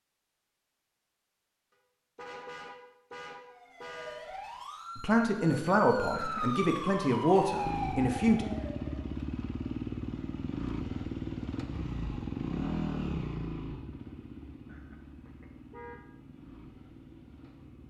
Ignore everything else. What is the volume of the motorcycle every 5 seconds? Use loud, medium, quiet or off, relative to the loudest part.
off, loud, loud, quiet.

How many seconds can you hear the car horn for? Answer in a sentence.
You can hear the car horn for 4 seconds altogether.